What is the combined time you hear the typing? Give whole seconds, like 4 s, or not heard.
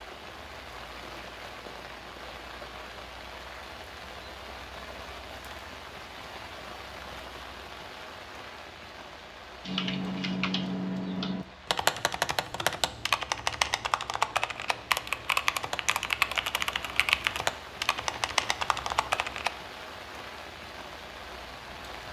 10 s.